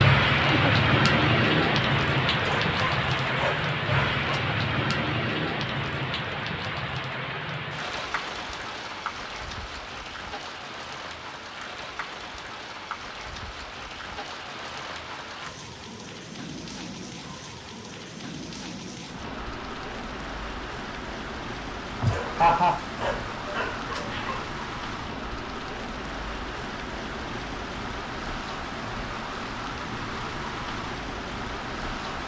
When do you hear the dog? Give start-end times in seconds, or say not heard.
2.5-4.4, 22.1-24.6.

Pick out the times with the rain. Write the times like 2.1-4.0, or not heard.
0.0-32.2.